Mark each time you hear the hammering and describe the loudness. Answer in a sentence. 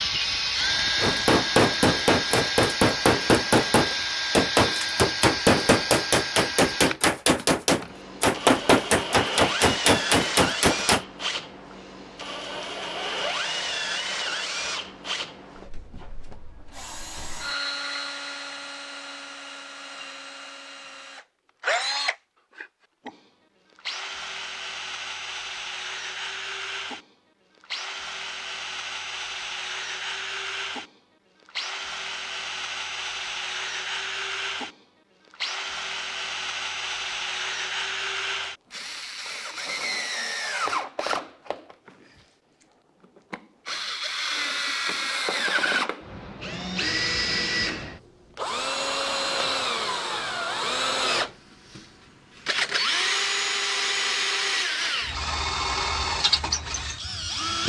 You can hear the hammering from 1.0 to 11.1 s, at a steady volume.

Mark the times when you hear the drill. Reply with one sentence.
You can hear the drill from 0.0 to 42.2 s and from 43.1 to 57.6 s.